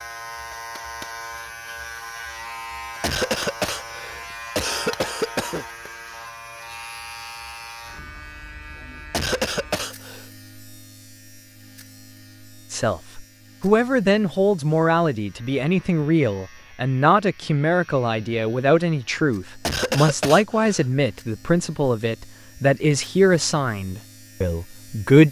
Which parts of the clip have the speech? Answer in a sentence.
You can hear the speech from 12.7 to 25.2 s.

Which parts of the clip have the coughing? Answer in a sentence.
You can hear the coughing from 3.0 to 5.7 s, from 9.1 to 10.2 s and from 19.6 to 20.9 s.